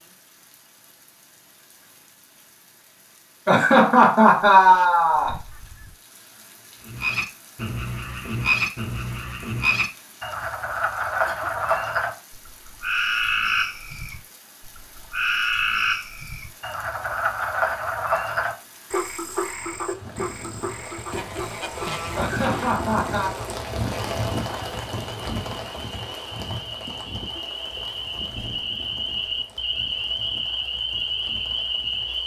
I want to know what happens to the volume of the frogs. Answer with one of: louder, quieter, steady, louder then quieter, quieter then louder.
quieter then louder.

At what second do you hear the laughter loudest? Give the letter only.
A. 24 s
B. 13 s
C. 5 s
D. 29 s
C.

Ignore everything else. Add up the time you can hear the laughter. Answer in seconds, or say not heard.
3 s.